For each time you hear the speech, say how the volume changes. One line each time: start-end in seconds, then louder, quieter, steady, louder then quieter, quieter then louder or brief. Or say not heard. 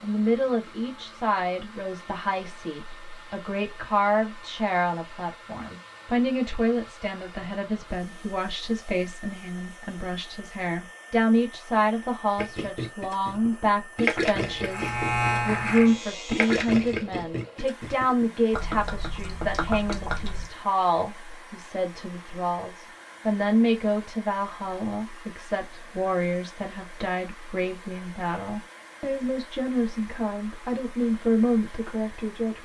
0.0-32.6 steady.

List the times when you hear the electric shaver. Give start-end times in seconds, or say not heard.
14.5-16.8.